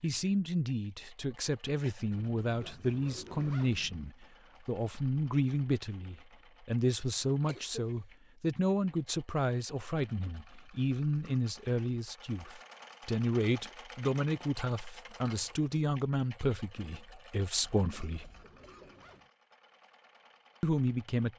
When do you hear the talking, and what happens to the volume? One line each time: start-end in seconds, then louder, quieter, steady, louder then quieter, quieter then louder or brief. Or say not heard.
0.0-18.3 steady
20.6-21.3 brief.